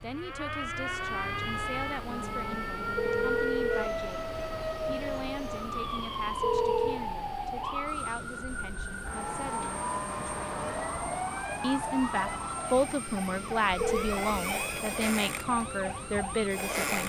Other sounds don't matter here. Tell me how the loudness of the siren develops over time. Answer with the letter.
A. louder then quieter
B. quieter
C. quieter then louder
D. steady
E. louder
D.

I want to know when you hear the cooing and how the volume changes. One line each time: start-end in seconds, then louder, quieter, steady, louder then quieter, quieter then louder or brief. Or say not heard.
not heard.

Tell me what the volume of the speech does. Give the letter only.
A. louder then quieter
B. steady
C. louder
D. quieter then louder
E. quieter
C.